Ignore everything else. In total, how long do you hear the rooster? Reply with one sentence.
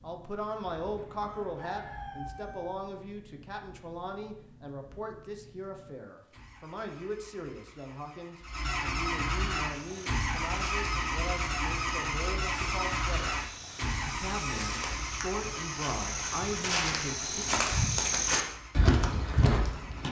The rooster can be heard for 2 seconds in total.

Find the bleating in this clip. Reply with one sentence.
You can't hear the bleating here.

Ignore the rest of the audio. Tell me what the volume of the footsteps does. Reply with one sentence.
The volume of the footsteps goes up.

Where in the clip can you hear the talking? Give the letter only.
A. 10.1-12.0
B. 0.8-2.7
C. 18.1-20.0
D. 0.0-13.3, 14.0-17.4
D.